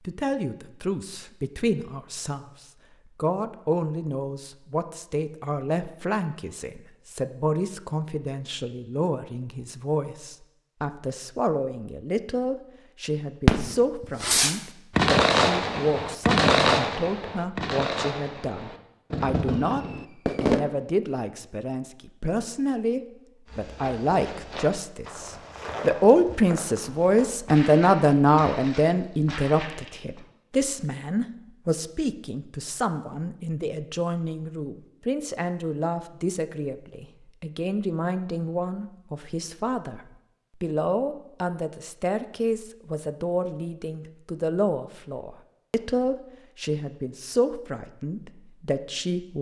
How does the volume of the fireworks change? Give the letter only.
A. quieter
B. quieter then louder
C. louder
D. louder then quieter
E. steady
A.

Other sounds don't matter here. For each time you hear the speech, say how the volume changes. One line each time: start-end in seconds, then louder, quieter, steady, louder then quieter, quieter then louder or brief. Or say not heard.
0.1-2.5 brief
3.1-49.3 louder then quieter.